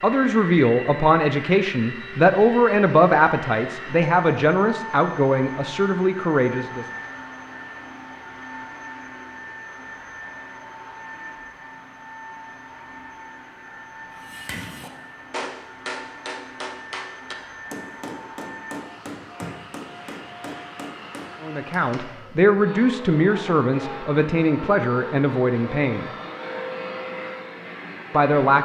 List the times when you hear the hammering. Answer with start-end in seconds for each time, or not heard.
14.1-21.8.